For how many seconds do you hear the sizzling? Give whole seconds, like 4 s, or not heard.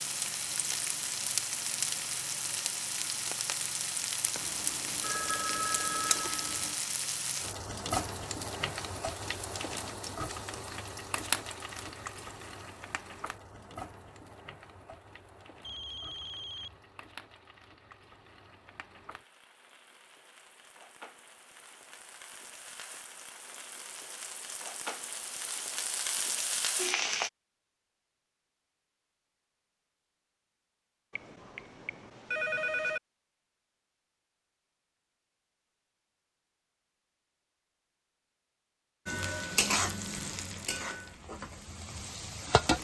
31 s.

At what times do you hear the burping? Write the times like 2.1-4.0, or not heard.
not heard.